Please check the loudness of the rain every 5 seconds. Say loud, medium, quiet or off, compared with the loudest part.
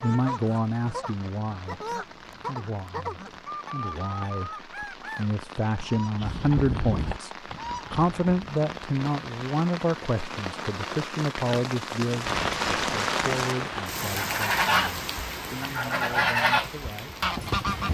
quiet, medium, loud, medium.